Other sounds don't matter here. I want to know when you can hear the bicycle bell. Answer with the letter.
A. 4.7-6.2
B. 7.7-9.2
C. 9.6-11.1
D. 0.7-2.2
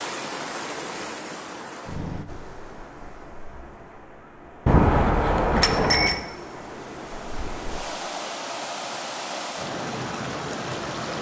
A.